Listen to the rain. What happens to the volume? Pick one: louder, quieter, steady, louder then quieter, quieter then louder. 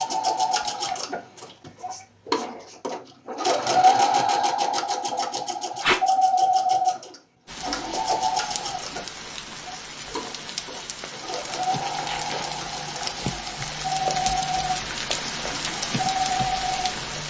louder.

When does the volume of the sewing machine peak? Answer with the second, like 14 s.
4 s.